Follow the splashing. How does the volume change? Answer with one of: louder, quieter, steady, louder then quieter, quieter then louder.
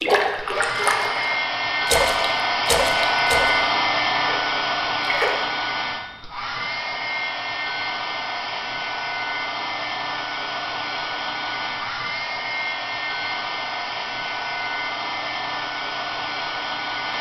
quieter.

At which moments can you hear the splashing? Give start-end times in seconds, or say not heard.
0.0-5.4.